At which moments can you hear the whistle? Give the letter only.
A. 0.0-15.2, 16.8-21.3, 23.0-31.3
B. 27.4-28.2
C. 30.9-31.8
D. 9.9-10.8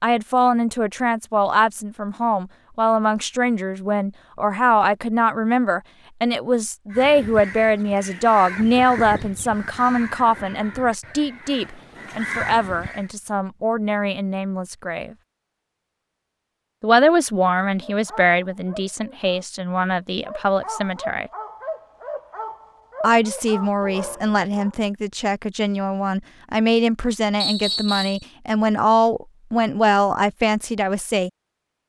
B.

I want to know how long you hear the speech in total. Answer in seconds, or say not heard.
28 s.